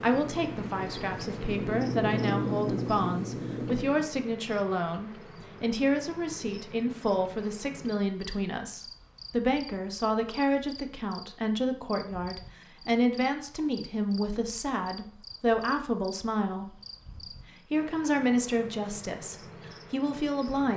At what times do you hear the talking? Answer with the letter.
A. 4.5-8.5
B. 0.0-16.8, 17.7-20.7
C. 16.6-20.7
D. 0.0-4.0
B.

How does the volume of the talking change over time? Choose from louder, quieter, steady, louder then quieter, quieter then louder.
steady.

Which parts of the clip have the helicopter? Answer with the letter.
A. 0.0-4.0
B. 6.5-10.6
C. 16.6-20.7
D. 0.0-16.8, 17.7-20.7
A.